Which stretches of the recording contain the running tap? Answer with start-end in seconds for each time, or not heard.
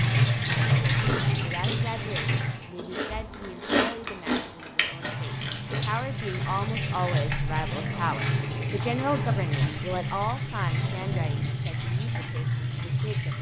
0.0-2.7, 4.8-13.3.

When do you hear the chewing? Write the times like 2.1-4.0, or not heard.
0.8-6.0.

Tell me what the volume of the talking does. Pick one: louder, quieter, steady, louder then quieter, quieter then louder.
louder then quieter.